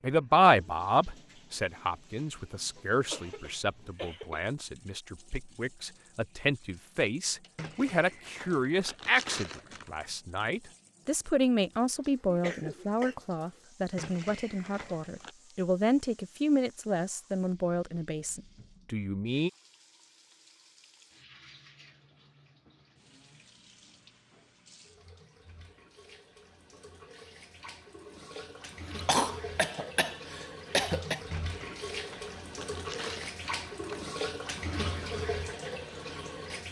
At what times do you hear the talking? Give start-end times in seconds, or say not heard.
0.0-19.5.